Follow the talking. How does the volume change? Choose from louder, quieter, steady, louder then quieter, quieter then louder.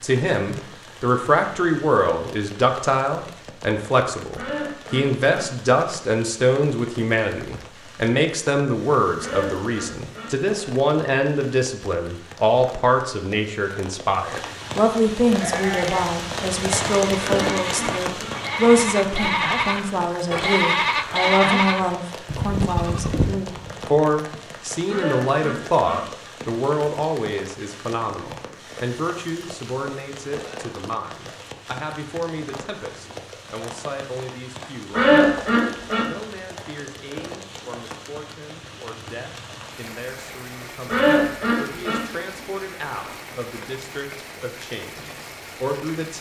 quieter.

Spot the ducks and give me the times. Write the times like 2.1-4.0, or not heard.
4.3-5.5, 9.2-10.3, 17.2-18.4, 24.9-26.0, 34.9-36.0, 40.9-42.0.